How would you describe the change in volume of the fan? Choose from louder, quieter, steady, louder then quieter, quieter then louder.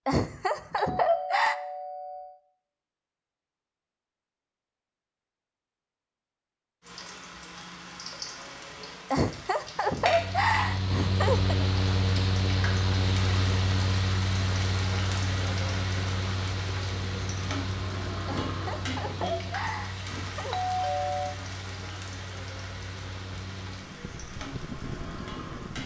quieter.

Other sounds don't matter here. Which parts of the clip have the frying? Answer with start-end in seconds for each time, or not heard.
6.8-25.8.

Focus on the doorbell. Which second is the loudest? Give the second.
21 s.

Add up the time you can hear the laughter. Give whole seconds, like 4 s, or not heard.
6 s.